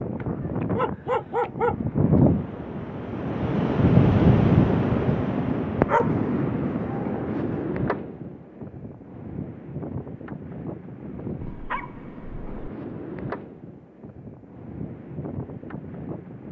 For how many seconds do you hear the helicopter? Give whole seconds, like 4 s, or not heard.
not heard.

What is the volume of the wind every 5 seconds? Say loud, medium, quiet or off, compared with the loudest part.
loud, medium, quiet, quiet.